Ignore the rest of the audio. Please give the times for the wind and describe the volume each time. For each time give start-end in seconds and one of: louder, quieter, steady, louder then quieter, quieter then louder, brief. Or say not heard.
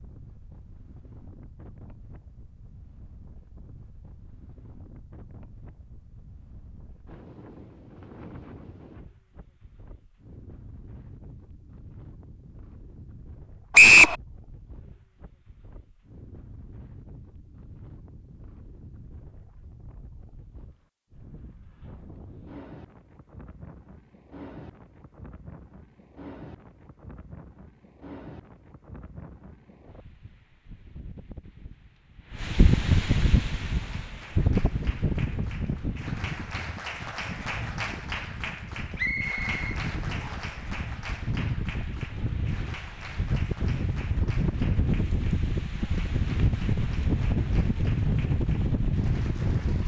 0.0-49.8 louder.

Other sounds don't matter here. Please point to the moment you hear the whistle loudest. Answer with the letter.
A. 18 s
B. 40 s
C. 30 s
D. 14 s
D.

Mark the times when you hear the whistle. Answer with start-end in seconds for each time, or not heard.
13.8-14.2, 39.0-40.5.